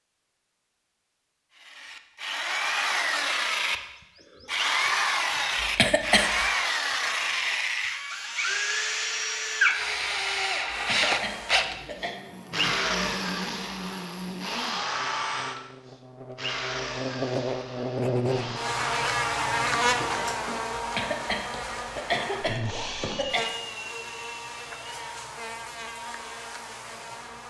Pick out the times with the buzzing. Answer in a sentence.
The buzzing can be heard from 10.7 to 27.4 s.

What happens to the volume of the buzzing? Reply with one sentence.
The volume of the buzzing goes up, then down.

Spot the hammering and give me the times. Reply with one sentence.
The hammering can't be heard in this clip.